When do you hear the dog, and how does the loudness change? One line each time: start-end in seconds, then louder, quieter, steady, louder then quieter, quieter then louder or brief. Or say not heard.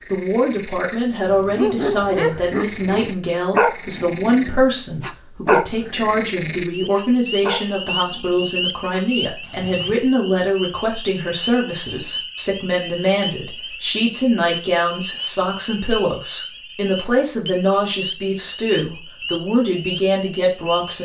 1.3-9.9 quieter.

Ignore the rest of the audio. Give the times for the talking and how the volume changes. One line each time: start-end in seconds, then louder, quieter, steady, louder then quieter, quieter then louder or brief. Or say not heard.
0.1-21.0 steady.